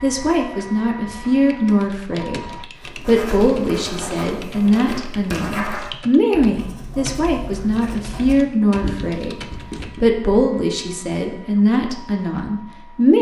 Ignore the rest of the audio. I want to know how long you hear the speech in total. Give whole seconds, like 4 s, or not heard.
13 s.